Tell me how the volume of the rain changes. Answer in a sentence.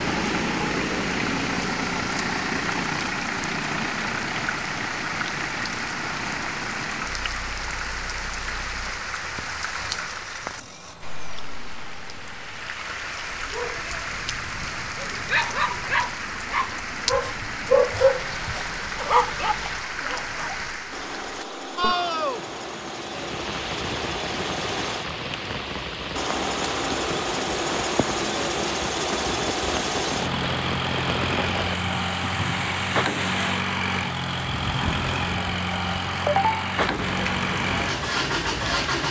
The volume of the rain stays about the same.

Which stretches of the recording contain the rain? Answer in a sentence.
You can hear the rain from 0.0 to 39.0 s.